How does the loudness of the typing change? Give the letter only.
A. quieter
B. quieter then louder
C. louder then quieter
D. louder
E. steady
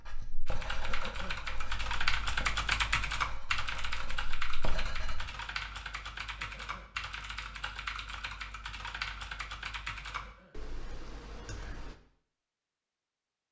A.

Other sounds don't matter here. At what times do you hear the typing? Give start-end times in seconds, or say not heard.
0.5-11.9.